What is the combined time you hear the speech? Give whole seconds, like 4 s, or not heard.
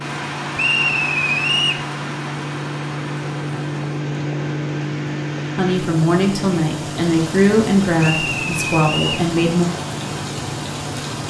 4 s.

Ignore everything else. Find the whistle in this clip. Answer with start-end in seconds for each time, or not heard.
0.6-1.9, 8.0-9.2.